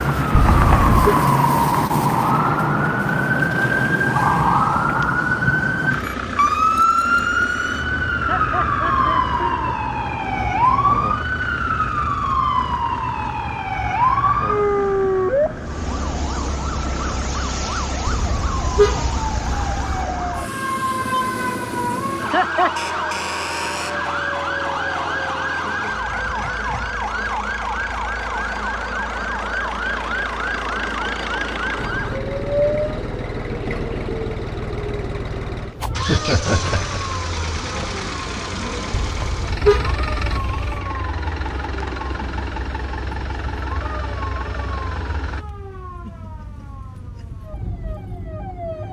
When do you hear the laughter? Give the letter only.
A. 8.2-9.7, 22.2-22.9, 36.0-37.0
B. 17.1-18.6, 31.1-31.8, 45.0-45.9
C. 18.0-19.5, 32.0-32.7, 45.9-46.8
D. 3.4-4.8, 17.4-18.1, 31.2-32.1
A.